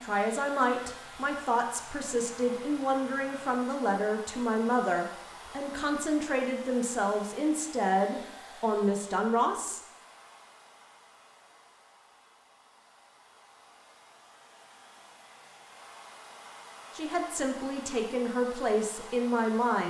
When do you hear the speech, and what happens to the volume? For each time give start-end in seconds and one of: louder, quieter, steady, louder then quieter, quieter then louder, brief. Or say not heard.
0.0-9.8 steady
16.9-19.8 brief.